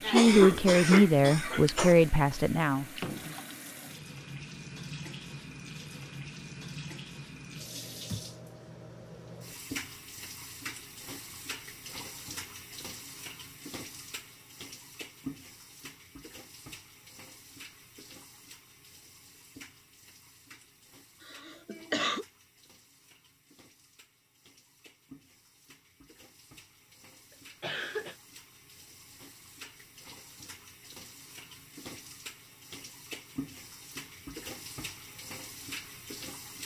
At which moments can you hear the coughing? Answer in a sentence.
The coughing can be heard from 0.0 to 1.9 s, from 21.2 to 22.2 s and from 27.6 to 28.1 s.